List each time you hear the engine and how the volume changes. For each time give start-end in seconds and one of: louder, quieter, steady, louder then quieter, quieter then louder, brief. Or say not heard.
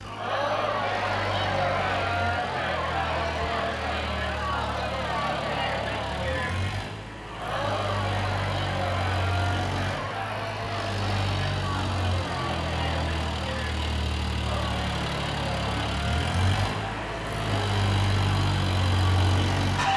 0.0-19.9 louder.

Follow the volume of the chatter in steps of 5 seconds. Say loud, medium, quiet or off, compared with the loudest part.
loud, loud, medium, medium.